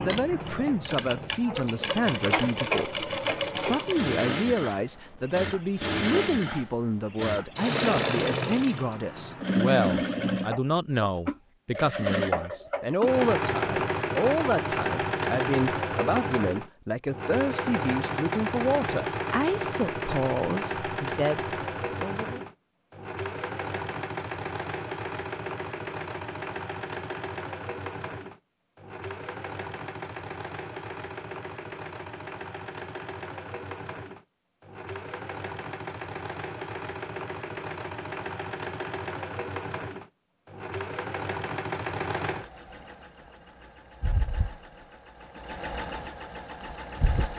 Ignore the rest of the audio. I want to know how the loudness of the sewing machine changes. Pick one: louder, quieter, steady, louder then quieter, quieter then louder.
quieter.